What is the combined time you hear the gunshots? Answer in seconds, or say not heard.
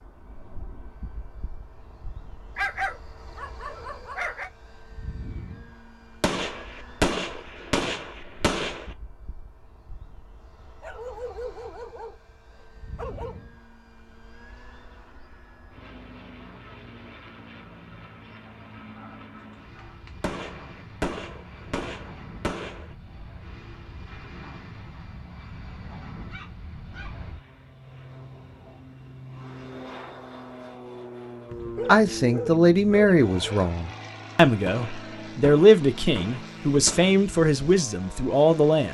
8 s.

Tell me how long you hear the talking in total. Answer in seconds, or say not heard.
7 s.